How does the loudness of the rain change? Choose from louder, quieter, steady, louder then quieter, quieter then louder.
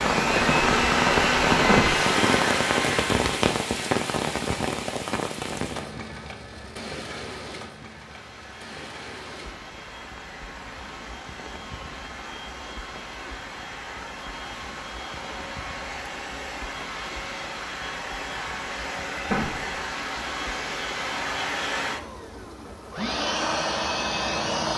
quieter.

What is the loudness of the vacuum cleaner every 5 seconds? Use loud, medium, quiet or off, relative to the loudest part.
loud, quiet, quiet, medium, medium.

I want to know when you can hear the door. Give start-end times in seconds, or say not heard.
1.6-2.1, 19.2-19.7.